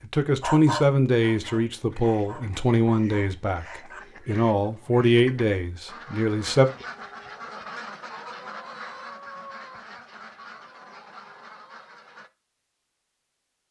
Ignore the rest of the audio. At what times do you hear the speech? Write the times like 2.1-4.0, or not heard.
0.0-6.7.